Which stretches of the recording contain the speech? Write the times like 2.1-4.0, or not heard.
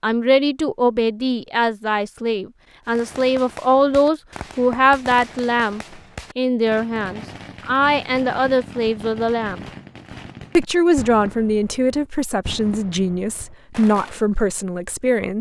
0.0-9.6, 10.6-15.3.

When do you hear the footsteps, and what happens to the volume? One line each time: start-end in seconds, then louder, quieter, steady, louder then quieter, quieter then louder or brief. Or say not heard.
not heard.